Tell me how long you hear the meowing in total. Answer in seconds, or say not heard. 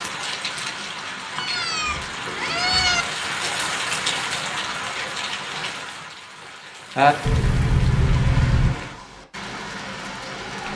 3 s.